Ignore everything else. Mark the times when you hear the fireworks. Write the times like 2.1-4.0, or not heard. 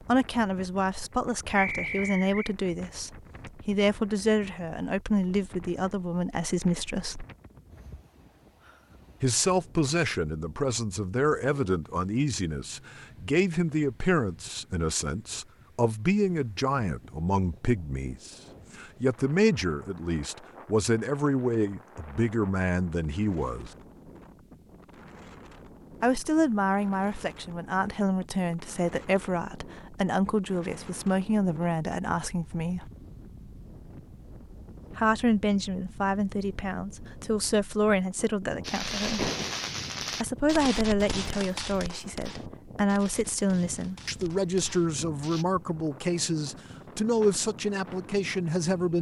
38.6-45.5.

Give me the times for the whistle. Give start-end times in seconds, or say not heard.
1.6-2.5.